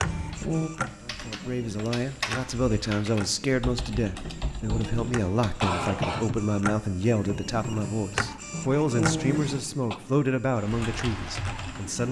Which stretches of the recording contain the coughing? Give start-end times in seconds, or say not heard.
0.0-0.7, 4.5-6.2, 8.5-10.0.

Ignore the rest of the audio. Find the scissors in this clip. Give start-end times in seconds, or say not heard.
not heard.